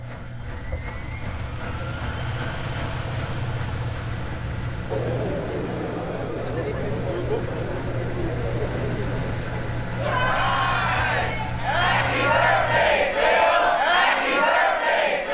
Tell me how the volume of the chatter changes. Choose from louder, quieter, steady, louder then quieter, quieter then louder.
louder.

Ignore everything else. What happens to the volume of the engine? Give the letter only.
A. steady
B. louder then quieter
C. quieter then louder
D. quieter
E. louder
A.